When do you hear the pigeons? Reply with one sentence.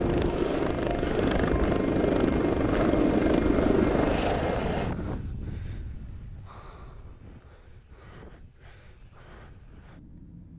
You can't hear the pigeons here.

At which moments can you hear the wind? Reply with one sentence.
The wind can be heard from 0.0 to 10.5 s.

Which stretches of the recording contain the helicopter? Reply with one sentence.
You can hear the helicopter from 0.0 to 5.0 s.